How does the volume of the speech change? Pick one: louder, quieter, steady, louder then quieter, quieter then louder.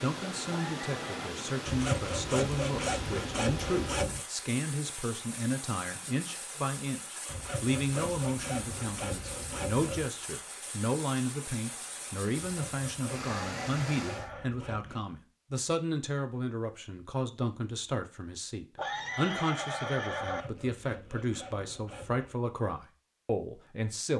steady.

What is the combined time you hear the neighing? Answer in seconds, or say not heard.
4 s.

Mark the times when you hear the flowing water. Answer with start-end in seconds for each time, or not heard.
0.0-14.3.